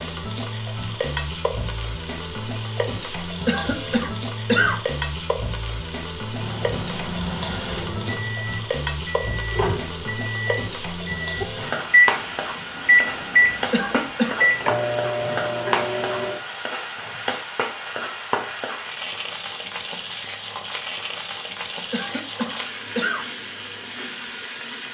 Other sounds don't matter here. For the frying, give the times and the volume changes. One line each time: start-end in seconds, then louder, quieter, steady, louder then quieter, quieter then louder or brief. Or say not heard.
0.0-24.8 steady.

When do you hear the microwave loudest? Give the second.
12 s.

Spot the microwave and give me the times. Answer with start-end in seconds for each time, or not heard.
6.3-16.4.